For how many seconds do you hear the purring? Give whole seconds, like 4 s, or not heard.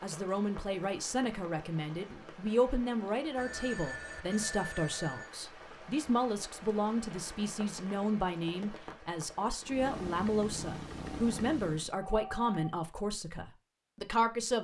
2 s.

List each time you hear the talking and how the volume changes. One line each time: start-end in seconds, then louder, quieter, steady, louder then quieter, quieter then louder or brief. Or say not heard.
0.0-14.5 steady.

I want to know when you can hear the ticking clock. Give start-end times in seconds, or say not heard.
not heard.